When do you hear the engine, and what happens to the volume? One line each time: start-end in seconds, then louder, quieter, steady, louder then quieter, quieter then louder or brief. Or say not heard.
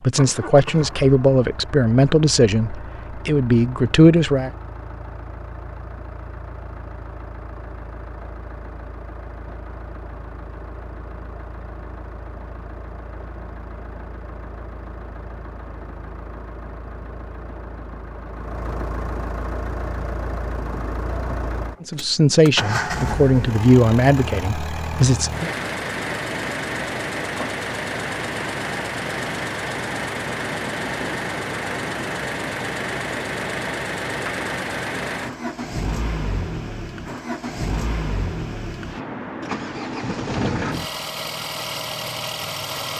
0.0-42.9 louder.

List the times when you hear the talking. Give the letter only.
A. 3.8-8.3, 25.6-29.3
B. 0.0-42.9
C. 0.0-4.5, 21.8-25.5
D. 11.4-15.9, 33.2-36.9
C.